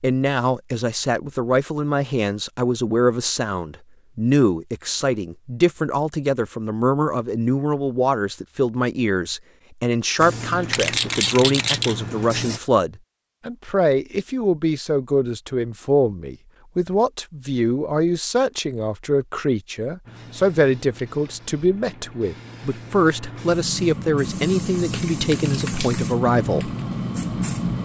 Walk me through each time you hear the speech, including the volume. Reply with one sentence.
The speech can be heard from 0.0 to 26.7 s, at a steady volume.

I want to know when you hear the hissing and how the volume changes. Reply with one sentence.
The hissing can be heard briefly from 10.2 to 12.6 s; and from 20.1 to 27.8 s, getting louder.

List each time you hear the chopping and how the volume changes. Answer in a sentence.
The chopping can't be heard in this clip.